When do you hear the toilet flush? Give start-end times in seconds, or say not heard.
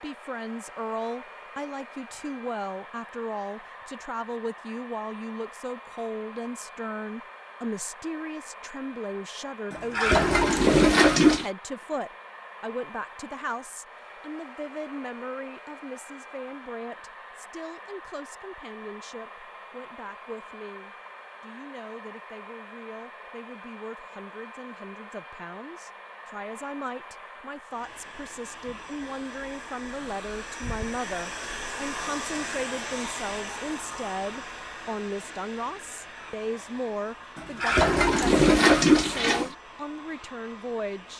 9.7-11.4, 37.4-39.5.